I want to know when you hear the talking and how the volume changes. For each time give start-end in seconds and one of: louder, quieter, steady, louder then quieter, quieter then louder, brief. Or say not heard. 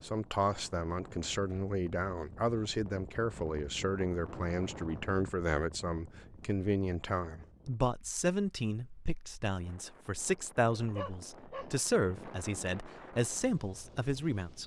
0.0-14.6 steady.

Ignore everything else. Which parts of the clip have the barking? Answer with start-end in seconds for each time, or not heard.
10.7-12.2.